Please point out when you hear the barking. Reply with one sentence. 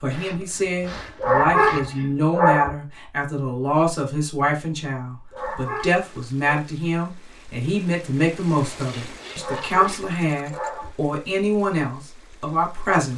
You can hear the barking from 1.2 to 2.8 s, from 5.3 to 6.7 s and from 9.3 to 10.9 s.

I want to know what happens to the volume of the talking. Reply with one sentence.
The volume of the talking stays about the same.